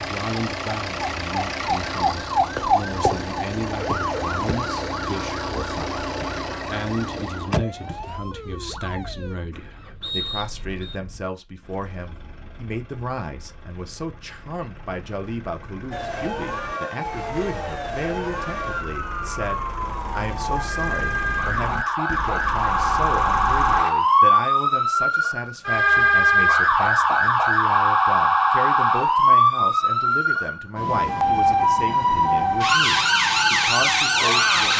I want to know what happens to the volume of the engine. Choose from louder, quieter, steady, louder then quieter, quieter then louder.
quieter then louder.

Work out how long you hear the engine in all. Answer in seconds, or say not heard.
24 s.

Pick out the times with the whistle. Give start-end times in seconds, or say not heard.
10.0-11.0.